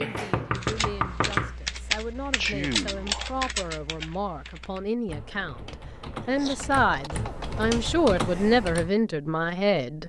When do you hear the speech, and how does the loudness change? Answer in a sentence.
The speech can be heard from 0.0 to 10.0 s, getting louder.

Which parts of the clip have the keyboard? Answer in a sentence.
You can hear the keyboard from 0.6 to 8.9 s.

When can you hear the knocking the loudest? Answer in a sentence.
The volume of the knocking peaks at 1 second.